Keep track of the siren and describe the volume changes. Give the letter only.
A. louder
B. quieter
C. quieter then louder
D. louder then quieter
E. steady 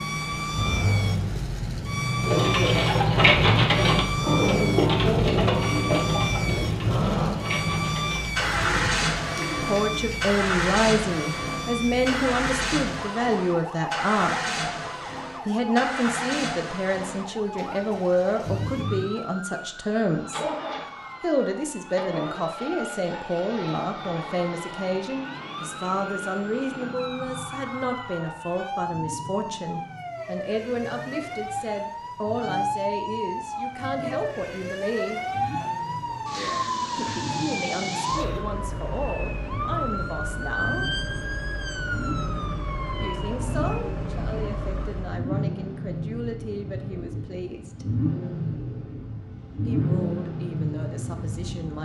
C.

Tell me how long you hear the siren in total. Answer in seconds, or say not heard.
45 s.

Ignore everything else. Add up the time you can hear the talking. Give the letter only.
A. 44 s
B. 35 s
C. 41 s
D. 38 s
B.